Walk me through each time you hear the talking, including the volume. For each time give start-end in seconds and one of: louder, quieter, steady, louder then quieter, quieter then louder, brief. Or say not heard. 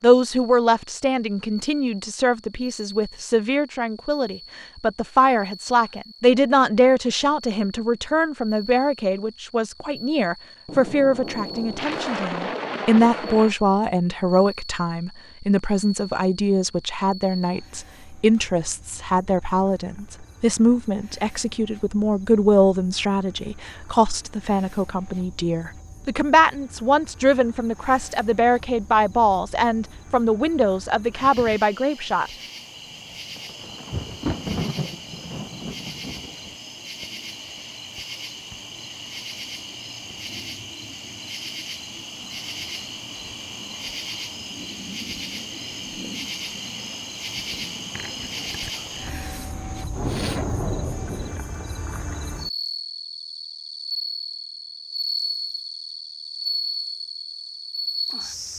0.0-32.3 steady.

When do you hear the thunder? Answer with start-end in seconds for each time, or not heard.
10.7-13.6, 33.4-36.5, 49.9-51.4.